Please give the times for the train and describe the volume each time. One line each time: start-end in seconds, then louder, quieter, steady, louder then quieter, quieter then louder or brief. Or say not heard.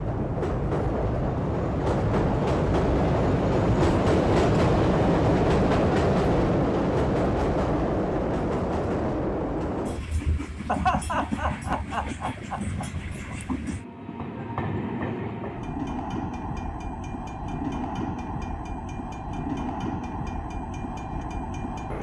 0.0-21.9 quieter.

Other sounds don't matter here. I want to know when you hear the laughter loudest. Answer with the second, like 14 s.
11 s.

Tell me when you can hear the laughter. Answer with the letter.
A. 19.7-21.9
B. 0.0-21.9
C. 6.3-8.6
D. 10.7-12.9
D.